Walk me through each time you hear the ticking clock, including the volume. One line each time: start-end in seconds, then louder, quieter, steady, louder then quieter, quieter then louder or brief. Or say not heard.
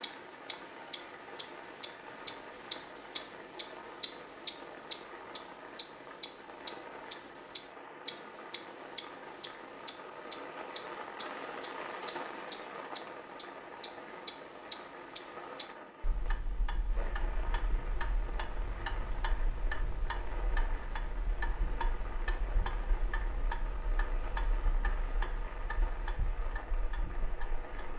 0.0-27.9 quieter.